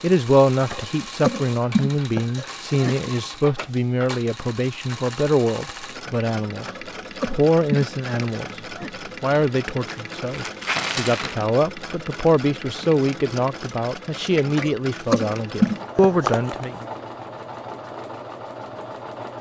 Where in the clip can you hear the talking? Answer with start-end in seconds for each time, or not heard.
0.0-6.7, 7.2-8.4, 9.2-16.9.